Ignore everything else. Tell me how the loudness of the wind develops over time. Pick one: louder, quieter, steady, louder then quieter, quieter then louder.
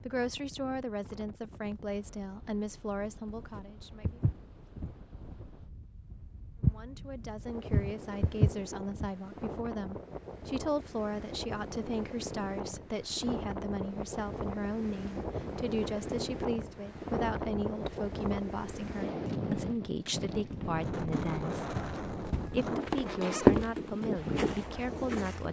louder.